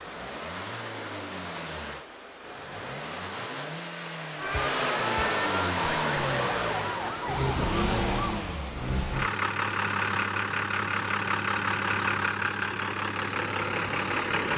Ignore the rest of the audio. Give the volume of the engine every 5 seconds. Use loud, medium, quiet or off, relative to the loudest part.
medium, loud, loud.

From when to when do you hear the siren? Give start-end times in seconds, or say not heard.
4.4-8.4.